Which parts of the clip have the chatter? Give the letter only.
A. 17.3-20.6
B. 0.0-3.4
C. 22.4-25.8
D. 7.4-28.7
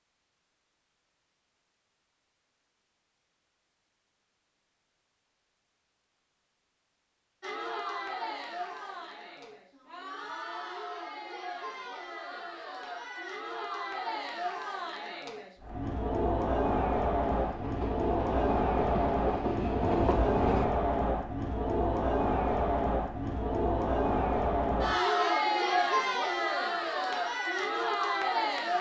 D.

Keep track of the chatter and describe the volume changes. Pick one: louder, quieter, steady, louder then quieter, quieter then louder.
louder.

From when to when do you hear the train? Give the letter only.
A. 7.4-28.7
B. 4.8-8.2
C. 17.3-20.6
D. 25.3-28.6
C.